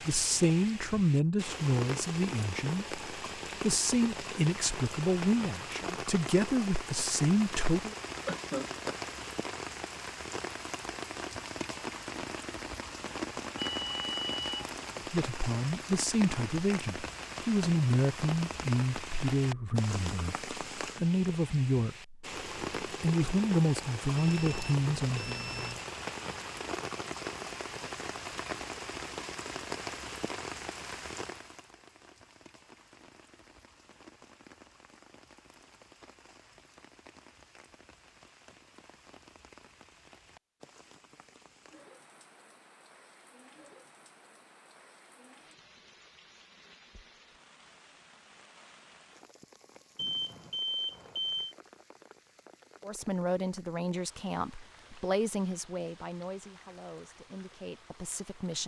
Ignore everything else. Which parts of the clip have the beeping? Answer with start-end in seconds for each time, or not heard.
13.6-14.8, 24.1-25.9, 50.0-51.5.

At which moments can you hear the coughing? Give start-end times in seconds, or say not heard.
8.2-8.9.